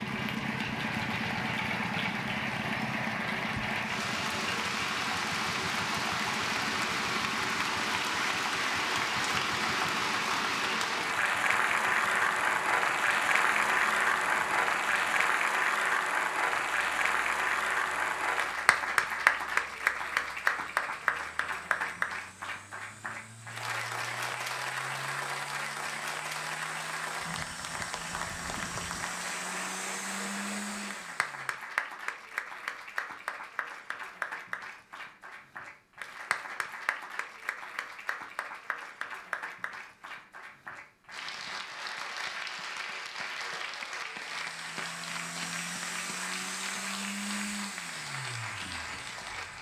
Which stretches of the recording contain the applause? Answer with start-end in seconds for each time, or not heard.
0.0-49.5.